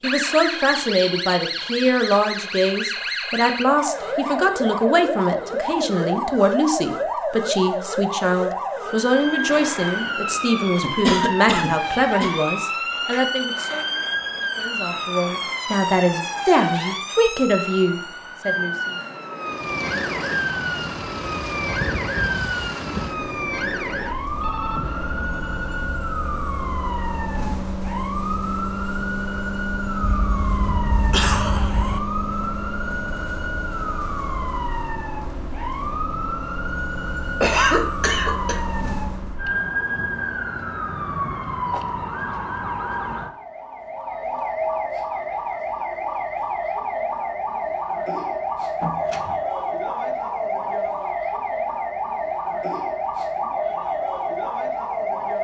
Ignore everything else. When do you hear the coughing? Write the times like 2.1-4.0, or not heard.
10.8-12.3, 30.0-32.0, 37.4-38.6.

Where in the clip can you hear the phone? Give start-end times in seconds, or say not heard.
24.4-26.0, 48.8-49.4.